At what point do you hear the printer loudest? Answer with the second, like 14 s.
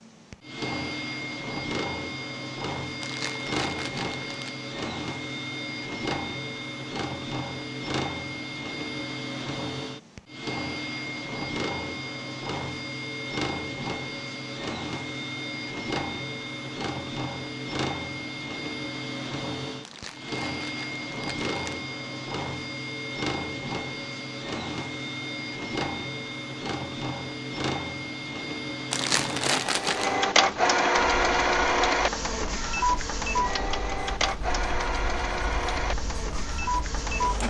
31 s.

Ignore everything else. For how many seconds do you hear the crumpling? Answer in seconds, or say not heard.
5 s.